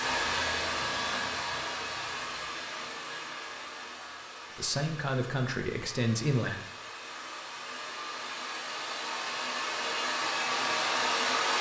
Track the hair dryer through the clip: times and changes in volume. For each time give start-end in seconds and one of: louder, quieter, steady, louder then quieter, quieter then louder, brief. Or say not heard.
0.0-11.5 quieter then louder.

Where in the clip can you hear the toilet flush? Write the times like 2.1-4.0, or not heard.
not heard.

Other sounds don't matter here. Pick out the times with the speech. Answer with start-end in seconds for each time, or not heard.
4.5-6.6.